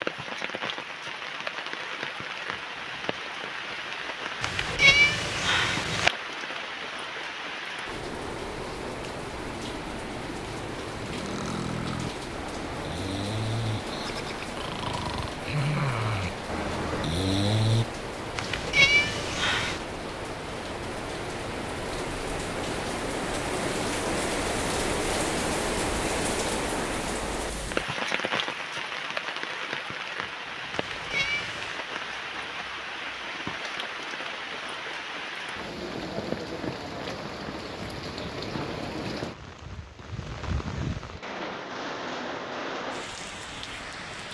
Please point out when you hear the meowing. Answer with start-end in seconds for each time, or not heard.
4.4-6.1, 18.4-19.9, 30.7-31.8.